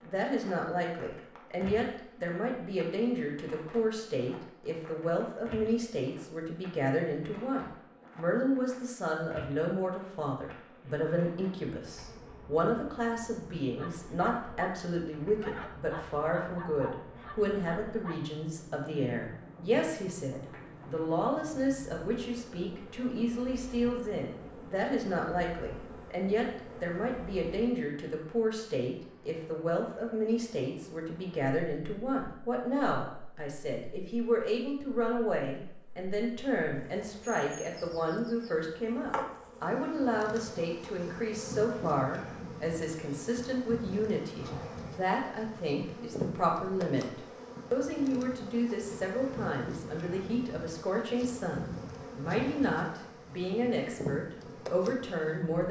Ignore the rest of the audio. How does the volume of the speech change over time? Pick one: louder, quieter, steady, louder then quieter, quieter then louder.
steady.